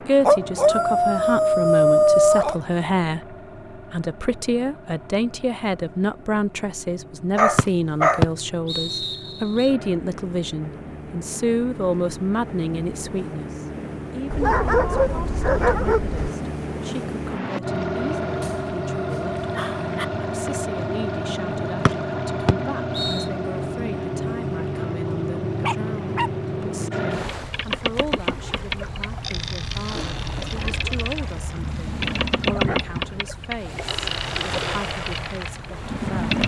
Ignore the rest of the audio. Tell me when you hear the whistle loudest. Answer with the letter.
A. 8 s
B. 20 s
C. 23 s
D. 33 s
A.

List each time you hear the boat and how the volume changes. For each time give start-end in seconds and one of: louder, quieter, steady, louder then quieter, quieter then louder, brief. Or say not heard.
0.0-36.4 louder.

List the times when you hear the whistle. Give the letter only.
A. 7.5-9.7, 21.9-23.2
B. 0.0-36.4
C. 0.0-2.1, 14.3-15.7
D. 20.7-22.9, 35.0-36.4
A.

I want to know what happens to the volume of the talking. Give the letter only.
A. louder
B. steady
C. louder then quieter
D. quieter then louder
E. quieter
E.